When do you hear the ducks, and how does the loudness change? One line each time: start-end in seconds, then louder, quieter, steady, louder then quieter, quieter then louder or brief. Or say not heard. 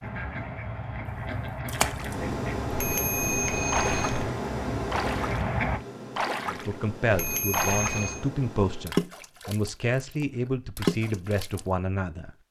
0.0-5.8 steady.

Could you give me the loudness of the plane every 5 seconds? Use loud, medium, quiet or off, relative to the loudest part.
loud, medium, off.